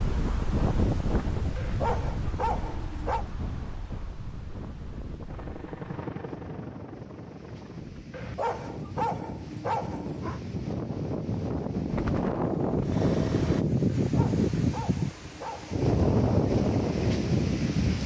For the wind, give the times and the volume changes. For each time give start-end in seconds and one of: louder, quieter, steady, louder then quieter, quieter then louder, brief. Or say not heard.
0.0-18.0 quieter then louder.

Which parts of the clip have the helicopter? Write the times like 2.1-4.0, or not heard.
5.2-8.1, 11.9-13.7.